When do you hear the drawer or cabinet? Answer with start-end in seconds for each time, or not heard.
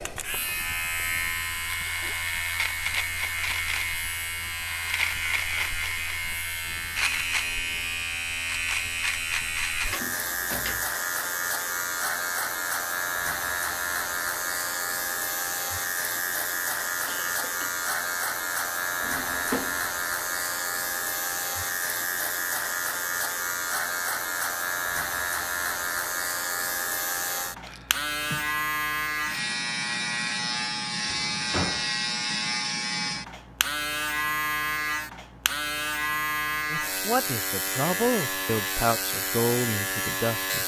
9.9-10.9, 19.0-19.9, 31.1-31.9.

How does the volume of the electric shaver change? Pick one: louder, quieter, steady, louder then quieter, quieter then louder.
steady.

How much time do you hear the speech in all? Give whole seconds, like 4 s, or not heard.
4 s.